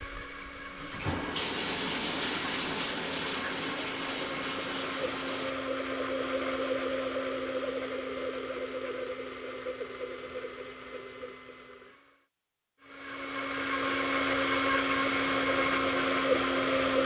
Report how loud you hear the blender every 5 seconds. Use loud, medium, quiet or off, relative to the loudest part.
quiet, medium, medium, loud.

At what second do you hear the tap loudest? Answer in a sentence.
The volume of the tap peaks at 2 seconds.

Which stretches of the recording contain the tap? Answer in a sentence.
The tap can be heard from 0.0 to 5.5 s and from 14.8 to 17.0 s.